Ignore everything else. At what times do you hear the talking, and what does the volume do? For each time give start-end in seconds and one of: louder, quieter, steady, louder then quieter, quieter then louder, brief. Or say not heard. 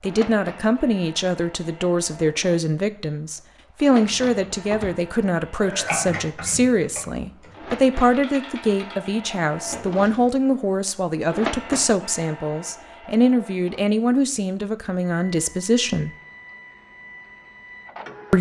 0.0-16.1 steady.